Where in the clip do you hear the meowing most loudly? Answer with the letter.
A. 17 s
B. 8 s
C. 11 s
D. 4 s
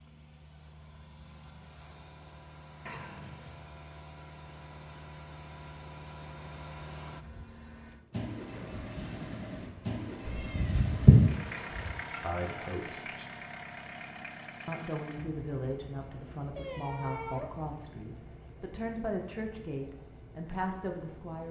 A.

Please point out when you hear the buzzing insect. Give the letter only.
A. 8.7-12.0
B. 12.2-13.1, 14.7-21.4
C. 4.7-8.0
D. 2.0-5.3
A.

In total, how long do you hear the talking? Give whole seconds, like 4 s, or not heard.
8 s.